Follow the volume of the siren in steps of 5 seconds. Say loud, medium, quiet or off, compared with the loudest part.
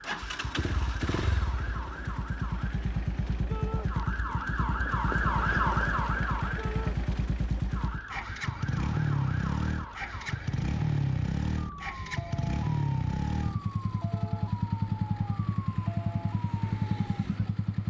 medium, loud, medium, medium.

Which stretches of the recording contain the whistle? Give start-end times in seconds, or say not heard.
not heard.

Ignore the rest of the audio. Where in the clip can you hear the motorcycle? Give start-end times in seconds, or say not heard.
0.0-17.8.